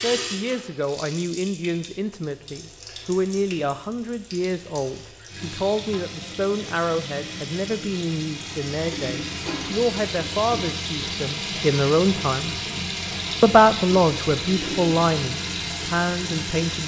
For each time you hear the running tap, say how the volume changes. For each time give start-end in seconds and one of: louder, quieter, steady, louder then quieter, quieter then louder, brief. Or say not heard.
0.0-16.8 louder.